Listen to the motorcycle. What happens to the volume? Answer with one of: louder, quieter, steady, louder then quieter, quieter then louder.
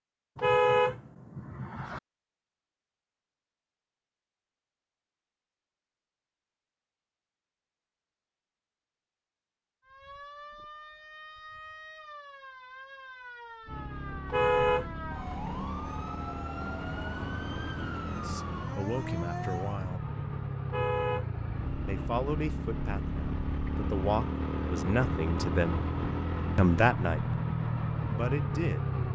louder.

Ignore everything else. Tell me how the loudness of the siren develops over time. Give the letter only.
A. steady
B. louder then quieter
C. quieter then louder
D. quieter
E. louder
E.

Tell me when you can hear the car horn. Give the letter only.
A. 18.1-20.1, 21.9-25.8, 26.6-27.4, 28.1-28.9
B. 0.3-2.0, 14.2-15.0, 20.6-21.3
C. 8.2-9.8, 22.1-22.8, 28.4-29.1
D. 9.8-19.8
B.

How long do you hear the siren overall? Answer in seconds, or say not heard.
10 s.